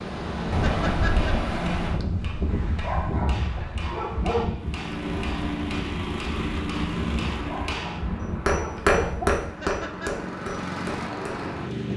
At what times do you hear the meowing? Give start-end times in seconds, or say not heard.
not heard.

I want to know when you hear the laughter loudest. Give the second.
1 s.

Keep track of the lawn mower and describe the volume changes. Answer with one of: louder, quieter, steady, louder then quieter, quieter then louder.
quieter then louder.